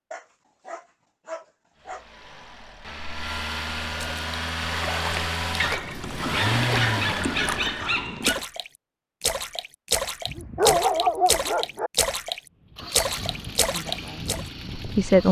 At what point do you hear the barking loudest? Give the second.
11 s.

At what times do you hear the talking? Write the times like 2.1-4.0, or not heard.
13.7-15.2.